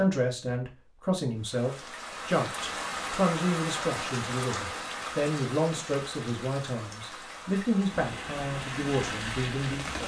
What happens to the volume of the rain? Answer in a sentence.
The loudness of the rain goes down, then up.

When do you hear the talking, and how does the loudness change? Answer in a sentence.
You can hear the talking from 0.0 to 10.0 s, at a steady volume.